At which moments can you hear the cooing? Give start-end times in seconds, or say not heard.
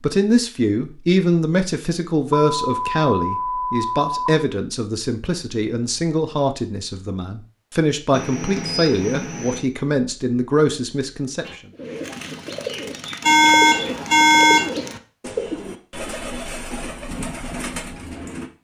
11.4-18.5.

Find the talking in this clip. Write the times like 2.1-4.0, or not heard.
0.0-11.6.